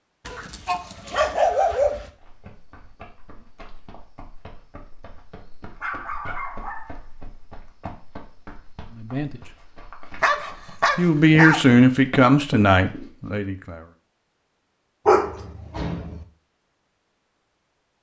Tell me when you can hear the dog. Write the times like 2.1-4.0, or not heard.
0.2-2.1, 5.8-7.3, 10.2-11.7, 15.1-16.2.